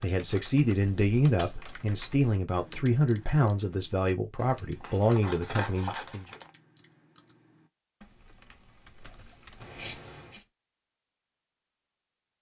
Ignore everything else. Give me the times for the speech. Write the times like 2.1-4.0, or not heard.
0.0-6.2.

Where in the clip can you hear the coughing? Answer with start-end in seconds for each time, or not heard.
not heard.